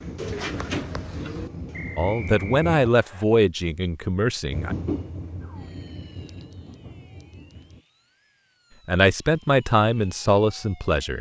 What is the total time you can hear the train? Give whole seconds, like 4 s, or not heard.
6 s.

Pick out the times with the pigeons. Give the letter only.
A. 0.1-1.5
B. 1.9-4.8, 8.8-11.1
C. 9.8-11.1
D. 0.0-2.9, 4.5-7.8
A.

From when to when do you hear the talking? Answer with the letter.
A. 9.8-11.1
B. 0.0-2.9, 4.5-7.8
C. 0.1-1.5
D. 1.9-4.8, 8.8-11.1
D.